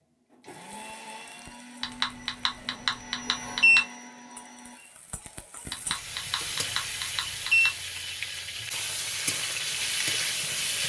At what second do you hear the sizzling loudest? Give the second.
10 s.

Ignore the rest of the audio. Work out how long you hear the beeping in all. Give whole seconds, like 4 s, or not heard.
4 s.